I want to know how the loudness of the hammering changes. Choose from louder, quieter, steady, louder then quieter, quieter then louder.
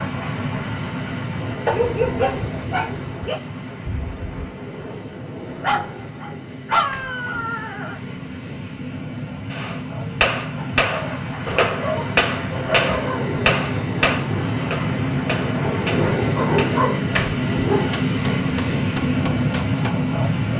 quieter.